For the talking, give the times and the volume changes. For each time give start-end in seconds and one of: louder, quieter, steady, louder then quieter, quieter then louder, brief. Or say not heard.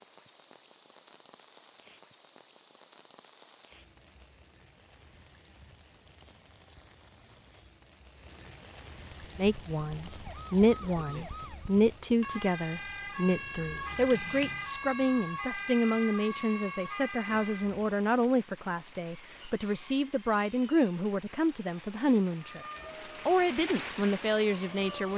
9.3-25.1 steady.